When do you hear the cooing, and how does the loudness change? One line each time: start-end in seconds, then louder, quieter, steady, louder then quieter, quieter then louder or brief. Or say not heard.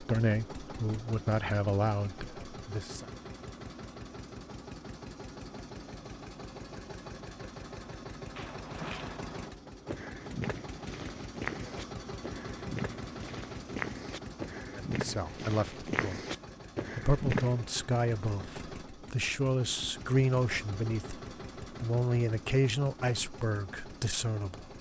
not heard.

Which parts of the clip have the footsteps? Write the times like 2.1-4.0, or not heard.
8.3-17.6.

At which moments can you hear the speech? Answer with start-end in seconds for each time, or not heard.
0.0-3.0, 14.7-16.2, 16.9-24.7.